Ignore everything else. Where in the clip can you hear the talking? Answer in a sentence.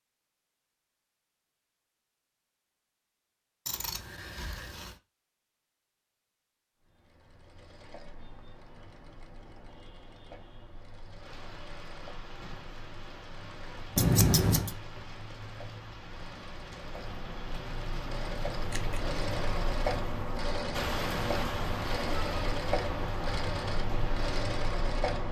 The talking can't be heard in this clip.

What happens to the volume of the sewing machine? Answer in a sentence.
The volume of the sewing machine goes up.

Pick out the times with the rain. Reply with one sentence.
You can hear the rain from 11.2 to 25.2 s.